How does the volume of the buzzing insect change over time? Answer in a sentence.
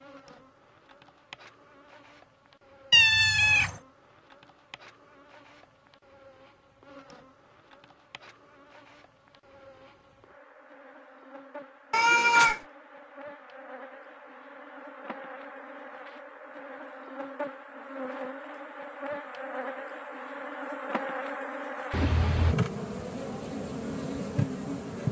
The loudness of the buzzing insect goes up.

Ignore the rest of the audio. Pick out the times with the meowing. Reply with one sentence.
The meowing can be heard from 2.9 to 3.8 s, from 11.9 to 12.6 s and from 21.9 to 22.6 s.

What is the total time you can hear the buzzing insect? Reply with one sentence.
You can hear the buzzing insect for 25 seconds altogether.